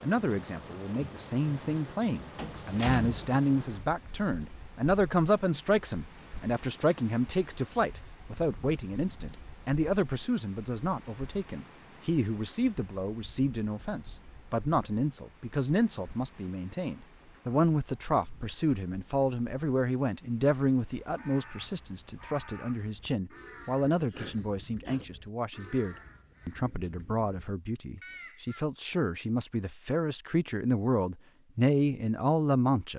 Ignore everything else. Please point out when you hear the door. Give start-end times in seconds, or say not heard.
2.4-3.5.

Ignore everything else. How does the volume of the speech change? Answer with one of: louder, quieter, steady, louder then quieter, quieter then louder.
steady.